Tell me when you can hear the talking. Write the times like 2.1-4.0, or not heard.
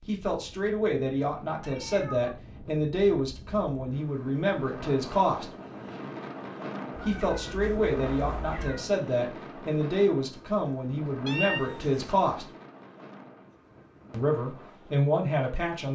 0.1-5.5, 7.0-12.4, 14.1-15.9.